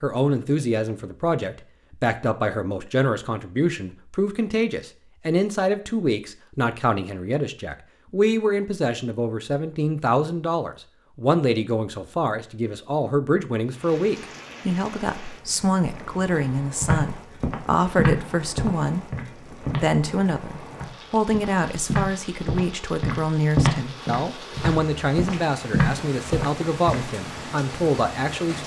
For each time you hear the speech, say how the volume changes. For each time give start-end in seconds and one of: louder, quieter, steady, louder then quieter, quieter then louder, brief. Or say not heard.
0.0-28.6 steady.